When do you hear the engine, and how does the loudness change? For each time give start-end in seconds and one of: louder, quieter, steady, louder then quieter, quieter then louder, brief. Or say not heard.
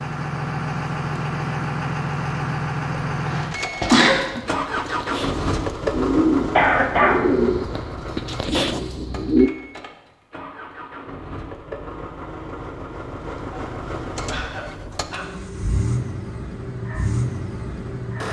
0.0-18.2 quieter then louder.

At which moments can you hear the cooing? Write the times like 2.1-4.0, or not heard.
4.3-9.5.